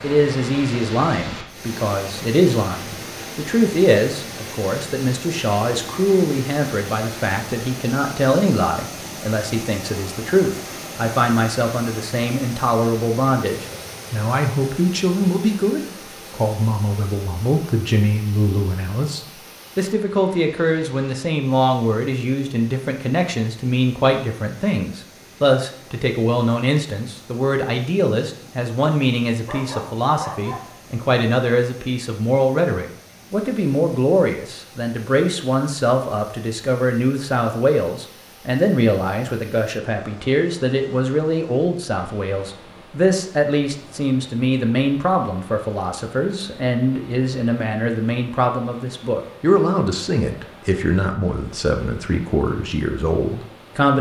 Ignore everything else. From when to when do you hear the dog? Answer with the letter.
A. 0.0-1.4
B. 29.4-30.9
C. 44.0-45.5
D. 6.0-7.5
B.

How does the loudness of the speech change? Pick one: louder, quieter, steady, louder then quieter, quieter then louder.
steady.